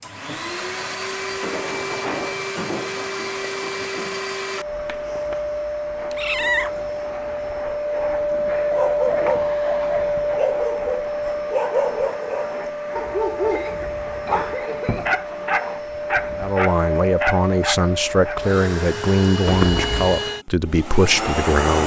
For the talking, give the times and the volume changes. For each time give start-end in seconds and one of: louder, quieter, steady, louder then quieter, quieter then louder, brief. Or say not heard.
16.4-21.8 steady.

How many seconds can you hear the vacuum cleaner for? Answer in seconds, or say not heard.
22 s.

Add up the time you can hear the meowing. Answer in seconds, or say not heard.
3 s.